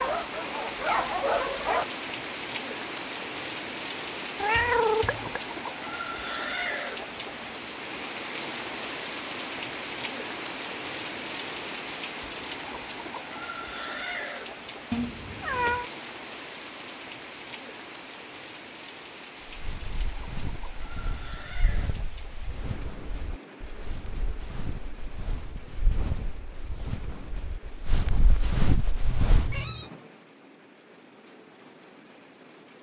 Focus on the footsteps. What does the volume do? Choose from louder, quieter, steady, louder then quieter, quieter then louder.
louder.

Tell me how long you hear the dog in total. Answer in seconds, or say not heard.
2 s.